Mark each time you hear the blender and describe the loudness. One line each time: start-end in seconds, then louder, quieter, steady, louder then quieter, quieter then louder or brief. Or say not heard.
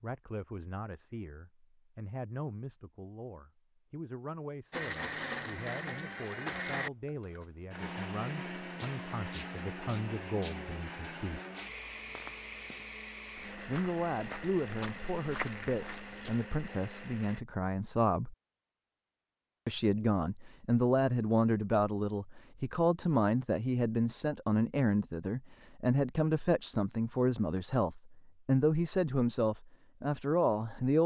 4.7-17.4 quieter.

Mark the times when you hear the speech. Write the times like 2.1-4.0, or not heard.
0.0-11.4, 13.7-18.4, 19.6-31.0.